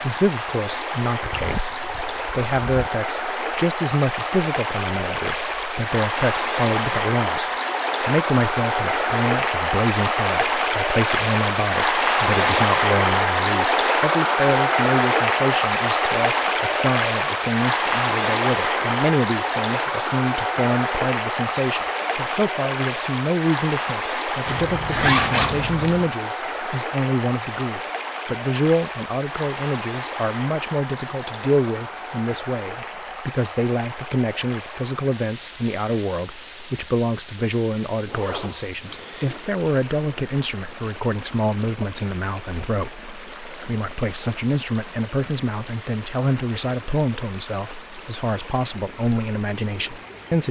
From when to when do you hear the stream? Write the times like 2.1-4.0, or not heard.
0.0-50.4.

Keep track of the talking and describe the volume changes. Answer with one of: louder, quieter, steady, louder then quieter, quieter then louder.
steady.